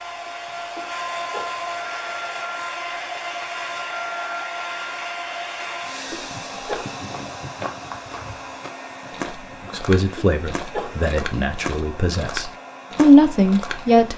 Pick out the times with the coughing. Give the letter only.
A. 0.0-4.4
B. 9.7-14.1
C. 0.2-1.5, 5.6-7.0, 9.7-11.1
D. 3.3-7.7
C.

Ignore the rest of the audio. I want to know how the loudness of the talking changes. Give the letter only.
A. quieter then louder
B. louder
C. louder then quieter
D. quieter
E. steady
A.